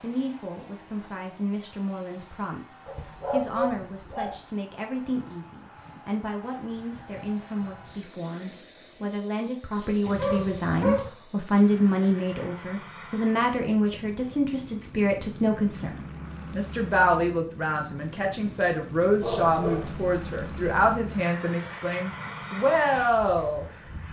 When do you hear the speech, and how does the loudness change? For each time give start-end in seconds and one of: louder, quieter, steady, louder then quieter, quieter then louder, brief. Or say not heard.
0.0-23.6 louder.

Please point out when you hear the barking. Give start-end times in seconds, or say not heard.
2.9-4.4, 10.1-11.1, 19.2-20.9.